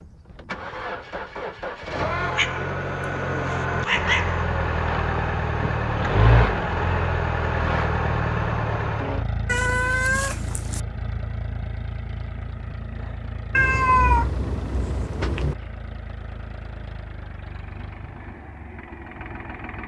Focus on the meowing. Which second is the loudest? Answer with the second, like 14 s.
14 s.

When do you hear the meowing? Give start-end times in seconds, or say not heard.
2.2-4.5, 9.4-10.8, 13.5-15.6.